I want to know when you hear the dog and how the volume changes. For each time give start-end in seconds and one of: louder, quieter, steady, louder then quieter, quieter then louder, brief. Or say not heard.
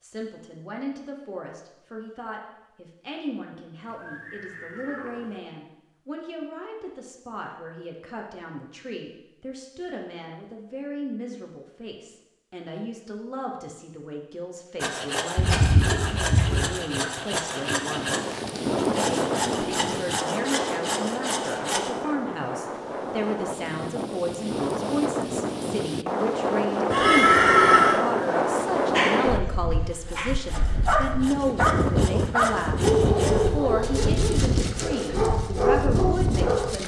28.9-29.4 brief
30.1-36.8 quieter then louder.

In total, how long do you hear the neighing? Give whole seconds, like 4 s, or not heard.
4 s.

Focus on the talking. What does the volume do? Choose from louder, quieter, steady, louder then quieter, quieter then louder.
louder.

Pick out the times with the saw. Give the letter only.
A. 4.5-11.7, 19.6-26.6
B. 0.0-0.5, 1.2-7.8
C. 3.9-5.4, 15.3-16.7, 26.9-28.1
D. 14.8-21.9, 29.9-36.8
D.